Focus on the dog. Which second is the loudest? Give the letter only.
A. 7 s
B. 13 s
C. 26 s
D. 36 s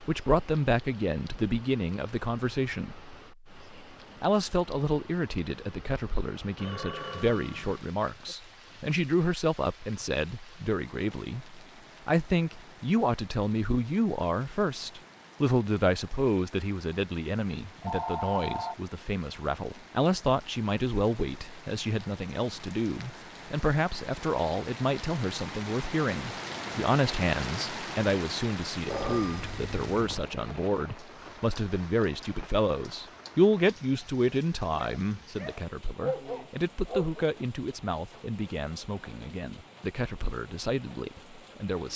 D.